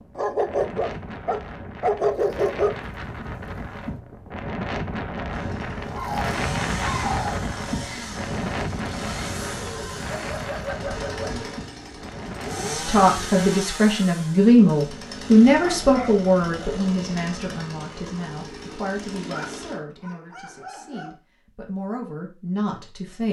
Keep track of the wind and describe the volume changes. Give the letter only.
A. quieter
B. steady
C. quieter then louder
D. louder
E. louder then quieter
E.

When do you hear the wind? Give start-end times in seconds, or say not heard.
0.0-13.4.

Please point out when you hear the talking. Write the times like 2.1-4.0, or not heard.
12.6-23.2.